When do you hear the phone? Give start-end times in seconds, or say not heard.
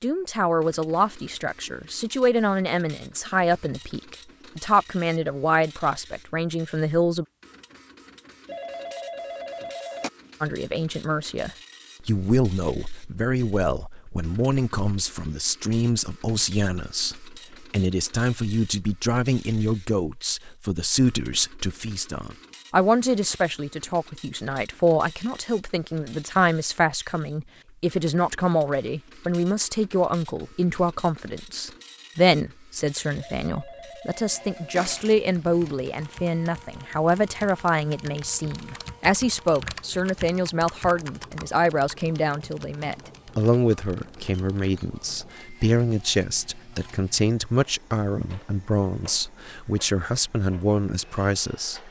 8.4-10.1, 33.4-35.1.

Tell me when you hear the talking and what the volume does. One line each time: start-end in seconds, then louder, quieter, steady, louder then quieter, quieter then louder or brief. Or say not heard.
0.0-7.2 steady
10.4-51.8 steady.